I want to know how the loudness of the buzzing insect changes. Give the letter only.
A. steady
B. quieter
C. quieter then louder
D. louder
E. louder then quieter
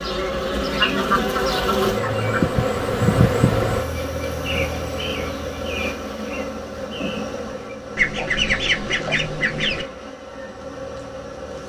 B.